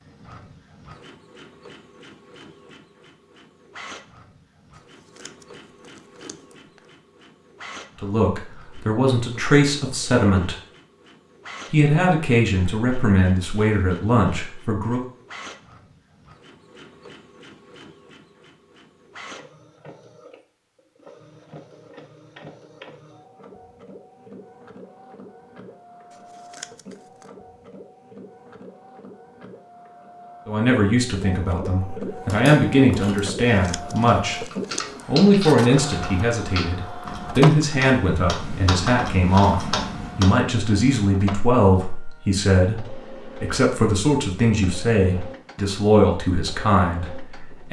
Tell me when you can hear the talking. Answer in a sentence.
The talking can be heard from 8.0 to 10.6 s, from 11.7 to 15.1 s, from 30.4 to 34.5 s and from 35.0 to 47.6 s.